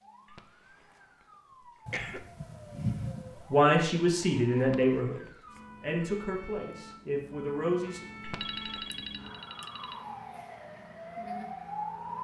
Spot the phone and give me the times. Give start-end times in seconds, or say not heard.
1.9-3.8, 8.4-10.0.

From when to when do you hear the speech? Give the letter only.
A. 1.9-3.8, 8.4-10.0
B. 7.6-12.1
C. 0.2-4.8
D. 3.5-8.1
D.